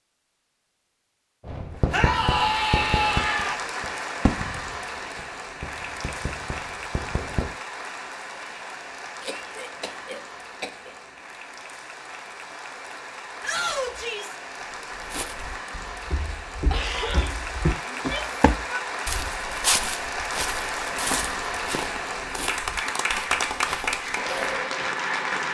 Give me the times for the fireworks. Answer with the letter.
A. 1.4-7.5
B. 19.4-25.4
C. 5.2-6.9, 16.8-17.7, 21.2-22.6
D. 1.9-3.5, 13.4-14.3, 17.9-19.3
A.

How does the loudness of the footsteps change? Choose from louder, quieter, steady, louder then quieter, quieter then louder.
louder then quieter.